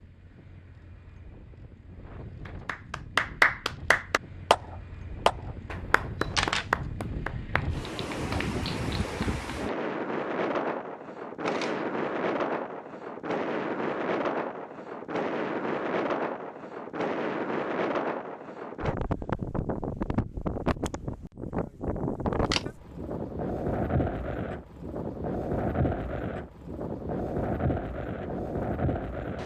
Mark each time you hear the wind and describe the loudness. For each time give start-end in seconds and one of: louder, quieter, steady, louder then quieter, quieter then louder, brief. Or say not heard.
0.0-29.4 louder.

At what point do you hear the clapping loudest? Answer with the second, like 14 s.
3 s.